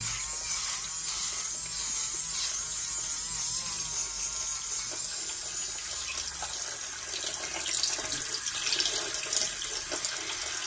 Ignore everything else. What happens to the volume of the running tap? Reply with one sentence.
The volume of the running tap goes up.